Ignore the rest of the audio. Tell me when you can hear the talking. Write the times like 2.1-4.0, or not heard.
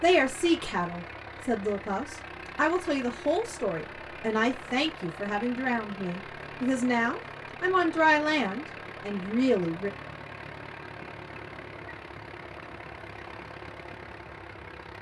0.0-9.9.